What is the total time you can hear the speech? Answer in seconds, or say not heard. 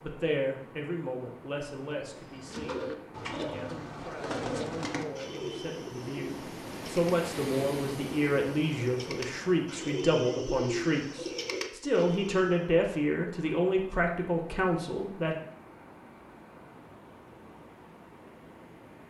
15 s.